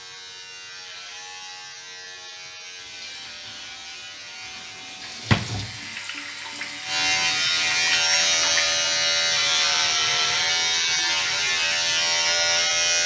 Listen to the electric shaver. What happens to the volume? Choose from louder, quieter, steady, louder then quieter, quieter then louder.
louder.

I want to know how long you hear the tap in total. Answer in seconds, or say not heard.
6 s.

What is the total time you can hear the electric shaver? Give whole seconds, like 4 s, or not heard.
13 s.